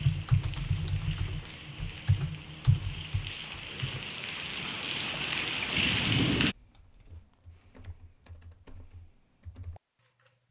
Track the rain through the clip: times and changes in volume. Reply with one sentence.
The rain can be heard from 0.0 to 6.5 s, getting louder.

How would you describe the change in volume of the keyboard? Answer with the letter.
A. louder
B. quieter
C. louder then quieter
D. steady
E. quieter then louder
B.